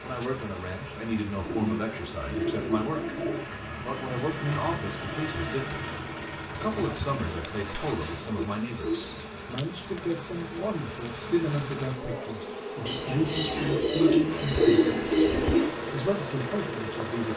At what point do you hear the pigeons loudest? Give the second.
15 s.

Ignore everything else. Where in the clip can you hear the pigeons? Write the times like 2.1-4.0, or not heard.
1.4-3.5, 6.6-9.3, 12.8-15.7.